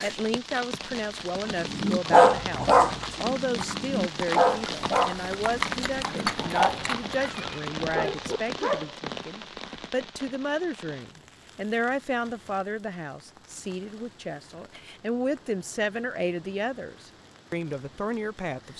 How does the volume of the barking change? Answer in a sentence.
The loudness of the barking goes down.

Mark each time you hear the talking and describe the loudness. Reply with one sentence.
The talking can be heard from 0.0 to 18.7 s, at a steady volume.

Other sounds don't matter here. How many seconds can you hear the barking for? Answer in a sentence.
The barking can be heard for 7 seconds in total.